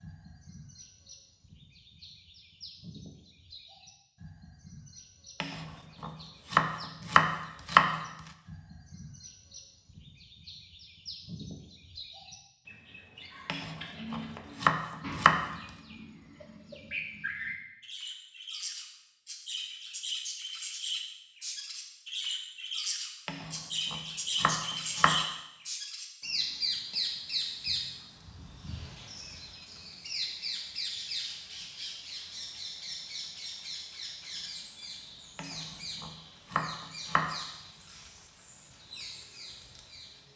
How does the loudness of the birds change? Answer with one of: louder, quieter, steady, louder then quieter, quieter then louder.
louder then quieter.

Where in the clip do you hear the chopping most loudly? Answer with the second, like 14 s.
8 s.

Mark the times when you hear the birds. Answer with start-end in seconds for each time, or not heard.
0.0-40.3.